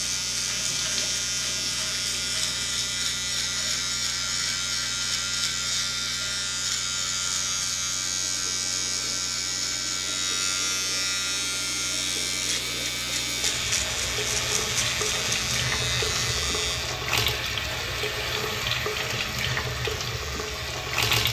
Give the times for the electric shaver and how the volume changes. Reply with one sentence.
You can hear the electric shaver from 0.0 to 21.0 s, getting quieter.